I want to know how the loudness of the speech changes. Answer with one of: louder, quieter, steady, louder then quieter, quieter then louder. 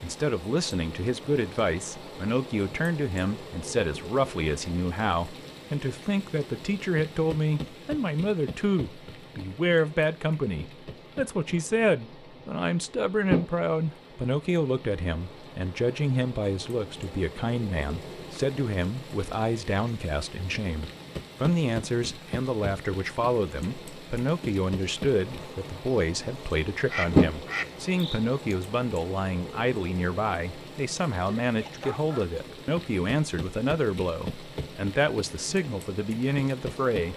steady.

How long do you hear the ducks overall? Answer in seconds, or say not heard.
2 s.